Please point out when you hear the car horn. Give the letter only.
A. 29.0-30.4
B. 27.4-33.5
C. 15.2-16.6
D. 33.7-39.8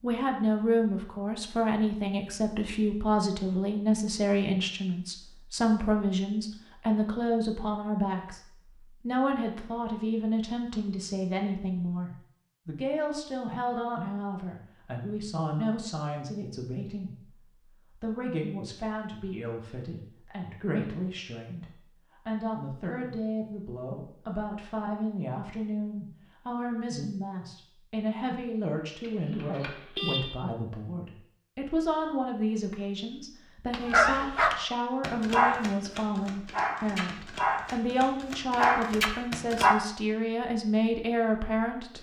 A.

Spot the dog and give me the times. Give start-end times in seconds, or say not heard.
33.7-39.8.